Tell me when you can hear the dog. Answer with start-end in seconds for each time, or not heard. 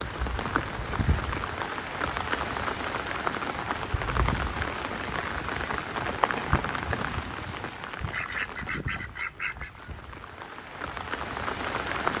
not heard.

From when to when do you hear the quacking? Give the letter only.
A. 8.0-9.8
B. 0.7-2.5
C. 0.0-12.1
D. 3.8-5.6
A.